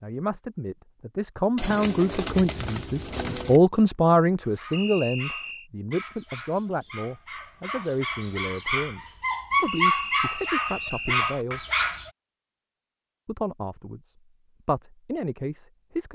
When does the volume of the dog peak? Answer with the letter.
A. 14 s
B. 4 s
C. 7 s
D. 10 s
D.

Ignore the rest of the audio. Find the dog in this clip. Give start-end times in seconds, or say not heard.
4.4-12.1.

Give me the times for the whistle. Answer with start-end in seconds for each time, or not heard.
4.7-5.7, 9.7-11.2.